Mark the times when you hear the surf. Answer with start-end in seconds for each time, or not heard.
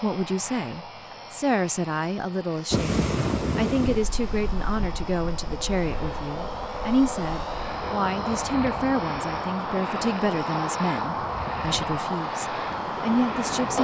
2.7-13.7.